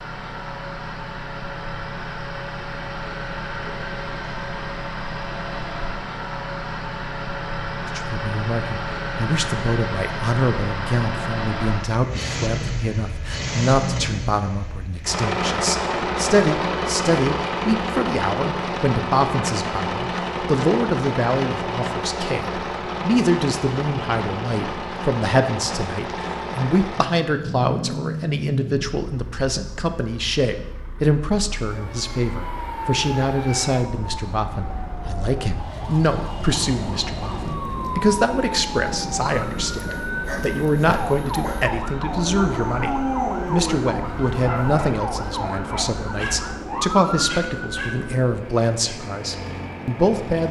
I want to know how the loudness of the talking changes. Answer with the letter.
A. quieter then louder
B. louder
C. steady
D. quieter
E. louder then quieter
C.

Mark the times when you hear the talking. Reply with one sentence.
The talking can be heard from 7.8 to 50.4 s.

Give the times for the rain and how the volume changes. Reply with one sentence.
The rain can't be heard in this clip.